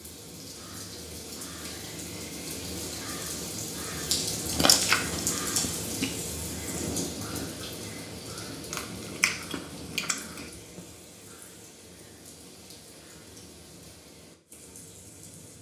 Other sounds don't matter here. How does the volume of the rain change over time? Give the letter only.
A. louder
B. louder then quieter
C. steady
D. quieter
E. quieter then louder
B.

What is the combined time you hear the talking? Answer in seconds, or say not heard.
not heard.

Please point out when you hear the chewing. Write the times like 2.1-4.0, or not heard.
4.5-6.1, 8.7-10.5.